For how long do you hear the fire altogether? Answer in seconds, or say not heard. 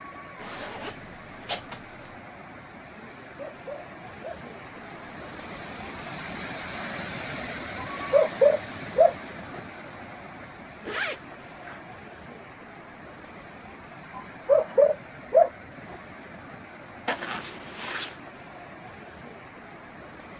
not heard.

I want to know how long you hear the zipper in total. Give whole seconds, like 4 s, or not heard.
4 s.